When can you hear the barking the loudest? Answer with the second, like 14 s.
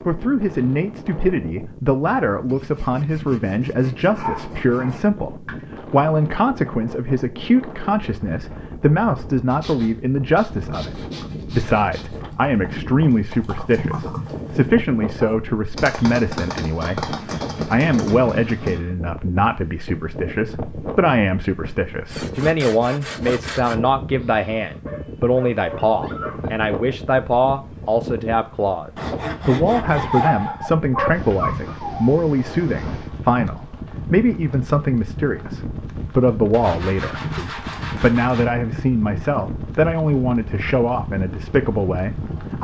30 s.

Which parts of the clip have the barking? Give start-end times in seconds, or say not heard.
4.0-5.5, 24.9-26.6, 29.9-32.1.